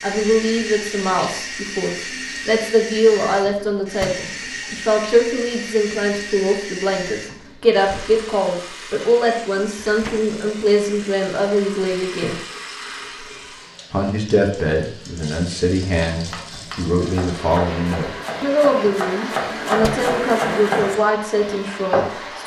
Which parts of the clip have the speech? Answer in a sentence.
The speech can be heard from 0.0 to 12.4 s and from 13.9 to 22.4 s.